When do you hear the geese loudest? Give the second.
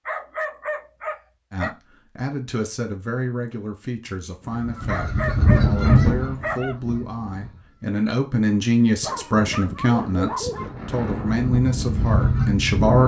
6 s.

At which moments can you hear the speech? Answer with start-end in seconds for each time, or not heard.
1.5-13.0.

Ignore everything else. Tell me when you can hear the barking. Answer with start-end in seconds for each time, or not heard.
0.1-1.8, 4.8-6.8, 9.0-10.8.